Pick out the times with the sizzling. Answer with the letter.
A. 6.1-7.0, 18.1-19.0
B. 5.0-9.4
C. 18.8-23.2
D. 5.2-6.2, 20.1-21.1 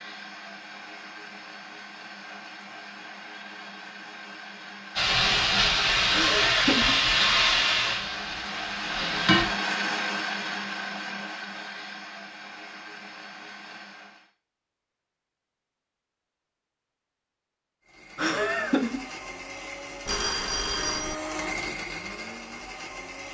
B.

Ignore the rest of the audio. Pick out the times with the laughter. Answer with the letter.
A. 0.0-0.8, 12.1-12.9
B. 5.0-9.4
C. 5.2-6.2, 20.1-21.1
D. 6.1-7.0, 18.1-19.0
D.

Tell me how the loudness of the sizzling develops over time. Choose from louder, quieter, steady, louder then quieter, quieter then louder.
quieter.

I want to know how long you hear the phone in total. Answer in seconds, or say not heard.
2 s.